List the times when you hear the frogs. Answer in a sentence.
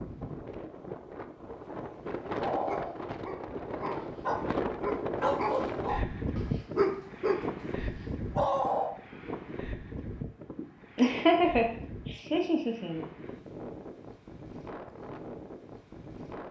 You can't hear the frogs here.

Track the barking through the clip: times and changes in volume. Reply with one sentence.
You can hear the barking from 2.4 to 7.5 s, getting louder; and briefly from 8.3 to 8.9 s.